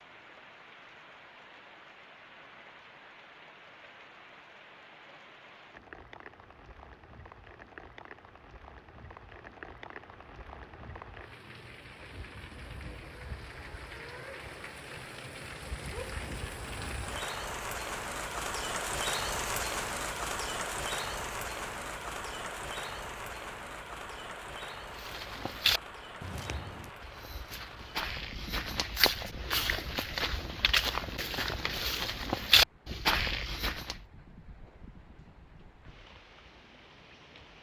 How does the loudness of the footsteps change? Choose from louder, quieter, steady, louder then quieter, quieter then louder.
quieter then louder.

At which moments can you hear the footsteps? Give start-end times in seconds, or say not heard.
24.9-34.0.